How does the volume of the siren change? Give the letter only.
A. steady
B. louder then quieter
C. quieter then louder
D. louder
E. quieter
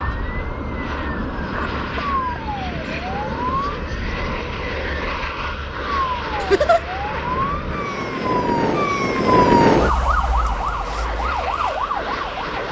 B.